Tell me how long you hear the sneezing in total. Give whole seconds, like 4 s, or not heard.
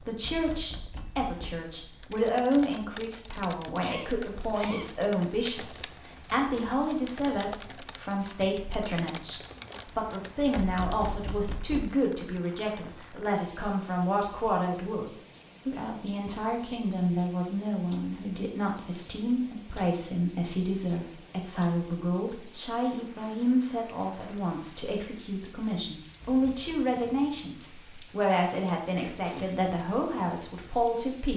2 s.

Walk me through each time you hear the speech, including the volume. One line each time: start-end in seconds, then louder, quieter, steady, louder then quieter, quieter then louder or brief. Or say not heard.
0.0-31.3 steady.